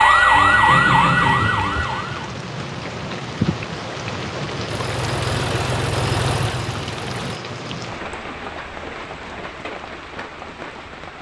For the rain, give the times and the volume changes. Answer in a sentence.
You can hear the rain from 0.0 to 11.1 s, getting louder then quieter.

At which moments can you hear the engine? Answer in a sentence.
You can hear the engine from 4.7 to 7.4 s.